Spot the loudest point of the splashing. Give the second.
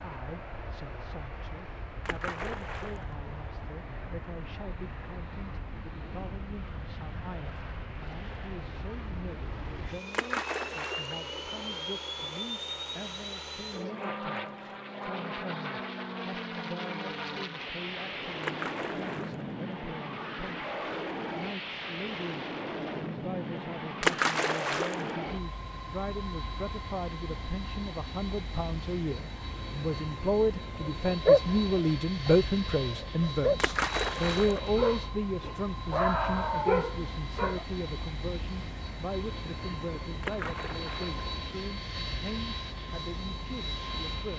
24 s.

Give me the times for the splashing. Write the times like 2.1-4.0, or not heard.
2.0-3.1, 10.1-11.2, 18.4-19.5, 24.0-25.1, 33.6-34.6, 40.2-41.2.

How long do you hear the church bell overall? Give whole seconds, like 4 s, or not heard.
not heard.